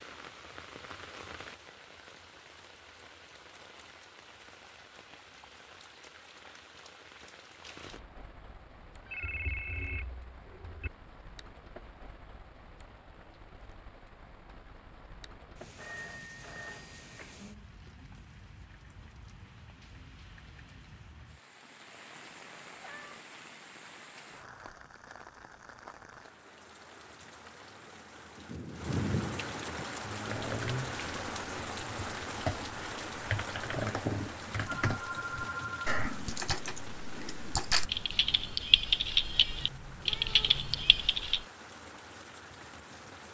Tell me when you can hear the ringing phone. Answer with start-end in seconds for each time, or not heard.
9.1-10.9, 15.8-17.4, 34.7-36.0.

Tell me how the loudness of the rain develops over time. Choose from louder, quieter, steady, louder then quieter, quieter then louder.
louder then quieter.